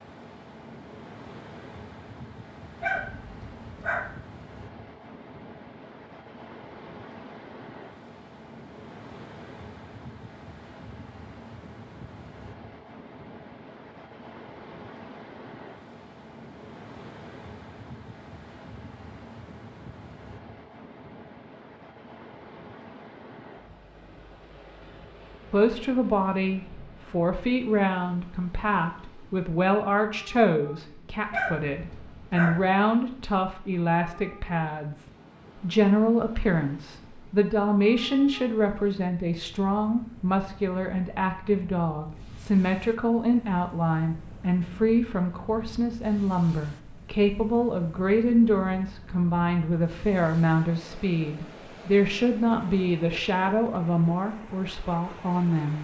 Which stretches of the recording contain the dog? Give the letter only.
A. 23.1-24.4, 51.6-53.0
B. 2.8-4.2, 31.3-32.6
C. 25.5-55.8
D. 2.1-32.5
B.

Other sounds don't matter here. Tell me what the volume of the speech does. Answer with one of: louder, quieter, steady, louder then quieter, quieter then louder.
steady.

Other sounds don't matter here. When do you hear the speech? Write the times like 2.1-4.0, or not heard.
25.5-55.8.